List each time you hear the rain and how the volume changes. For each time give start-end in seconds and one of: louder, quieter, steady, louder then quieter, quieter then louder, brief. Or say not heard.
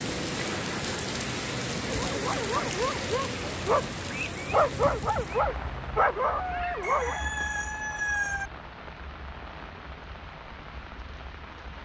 0.0-11.8 quieter.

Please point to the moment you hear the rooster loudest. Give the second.
8 s.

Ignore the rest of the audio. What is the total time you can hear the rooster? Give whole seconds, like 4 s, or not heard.
2 s.